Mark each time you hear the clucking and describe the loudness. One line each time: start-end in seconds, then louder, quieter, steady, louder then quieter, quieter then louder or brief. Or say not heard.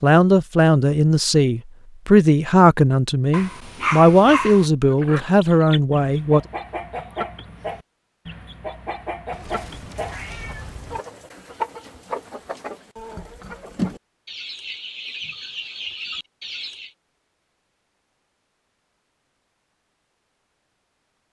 4.9-16.9 steady.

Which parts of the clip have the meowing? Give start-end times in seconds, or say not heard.
9.3-11.0.